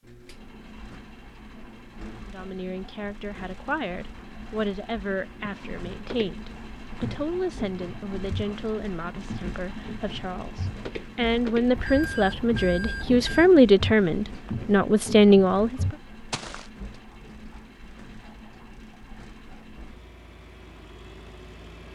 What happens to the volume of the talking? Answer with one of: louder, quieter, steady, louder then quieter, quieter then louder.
louder.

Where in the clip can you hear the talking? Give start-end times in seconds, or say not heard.
2.2-15.9.